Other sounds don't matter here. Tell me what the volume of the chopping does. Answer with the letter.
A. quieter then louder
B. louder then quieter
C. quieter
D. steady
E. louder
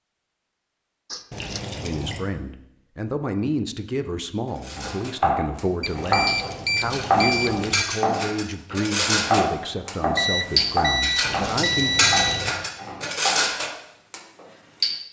C.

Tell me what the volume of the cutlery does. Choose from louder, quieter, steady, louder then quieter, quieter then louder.
louder.